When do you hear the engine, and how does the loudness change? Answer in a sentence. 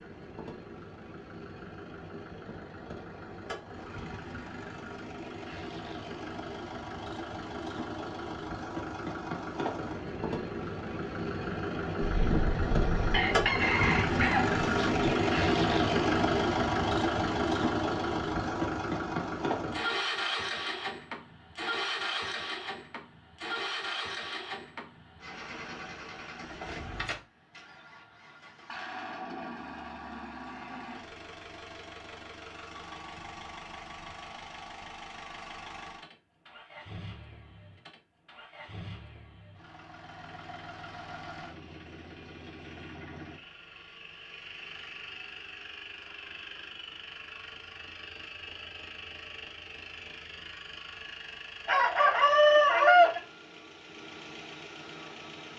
You can hear the engine from 0.0 to 55.5 s, getting louder then quieter.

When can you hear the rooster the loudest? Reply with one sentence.
The loudest moment of the rooster is at 53 seconds.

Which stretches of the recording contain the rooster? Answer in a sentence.
The rooster can be heard from 12.0 to 15.1 s and from 51.6 to 53.2 s.